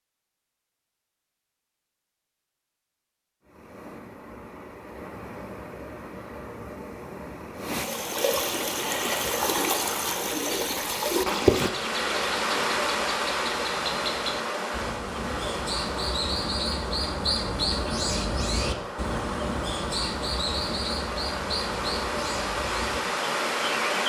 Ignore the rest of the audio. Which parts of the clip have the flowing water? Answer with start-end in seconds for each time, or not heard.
3.4-24.0.